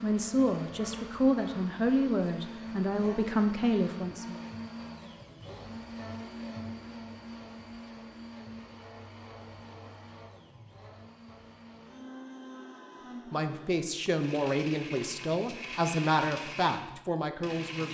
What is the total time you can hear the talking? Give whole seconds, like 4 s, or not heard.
9 s.